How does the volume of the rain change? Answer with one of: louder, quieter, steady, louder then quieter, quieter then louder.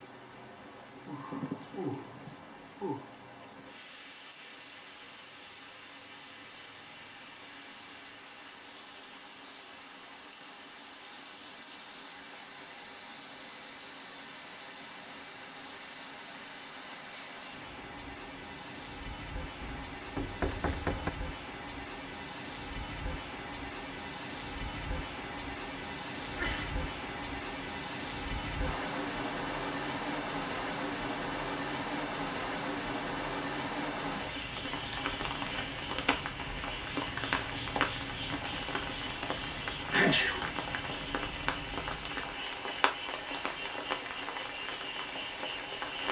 louder.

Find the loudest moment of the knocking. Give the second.
21 s.